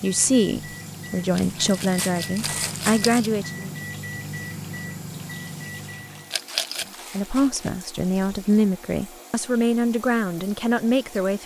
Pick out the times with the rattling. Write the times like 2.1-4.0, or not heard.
1.4-3.2, 6.3-6.9.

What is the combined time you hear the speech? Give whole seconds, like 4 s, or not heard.
8 s.